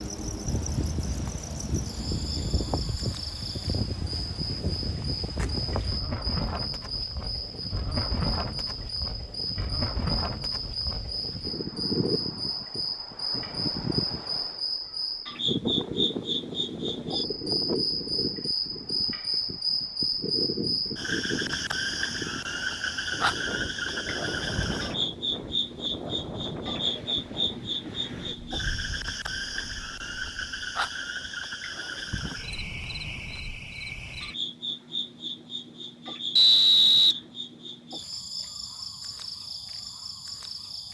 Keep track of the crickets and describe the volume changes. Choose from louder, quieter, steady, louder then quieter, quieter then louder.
louder then quieter.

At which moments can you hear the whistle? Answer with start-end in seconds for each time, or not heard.
36.4-37.1.